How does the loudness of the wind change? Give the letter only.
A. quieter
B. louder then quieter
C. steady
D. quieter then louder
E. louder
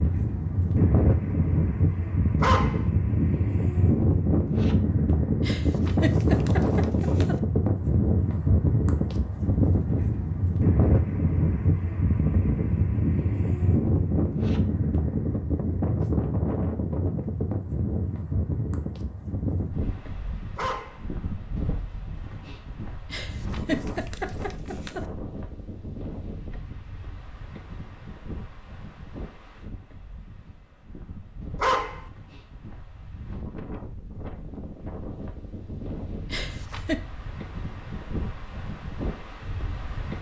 A.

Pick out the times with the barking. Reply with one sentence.
The barking can be heard from 2.4 to 2.9 s, from 20.6 to 21.1 s and from 31.6 to 32.0 s.